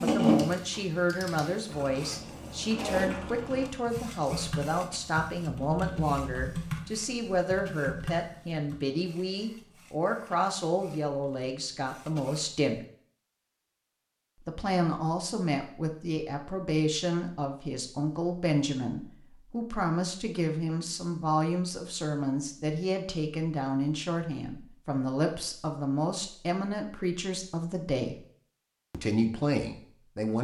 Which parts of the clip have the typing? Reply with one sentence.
The typing can be heard from 0.2 to 8.8 s.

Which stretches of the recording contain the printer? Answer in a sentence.
The printer can be heard from 0.0 to 12.7 s.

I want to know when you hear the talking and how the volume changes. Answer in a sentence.
You can hear the talking from 0.0 to 12.8 s, at a steady volume; from 14.4 to 28.2 s, at a steady volume; and briefly from 28.9 to 30.3 s.